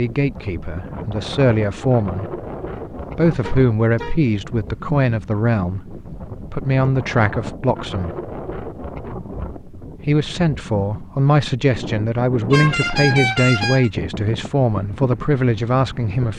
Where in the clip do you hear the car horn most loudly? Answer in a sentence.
The loudest moment of the car horn is at 13 seconds.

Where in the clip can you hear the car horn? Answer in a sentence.
The car horn can be heard from 3.4 to 4.2 s and from 12.5 to 13.9 s.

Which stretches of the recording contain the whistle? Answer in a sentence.
The whistle can't be heard in this clip.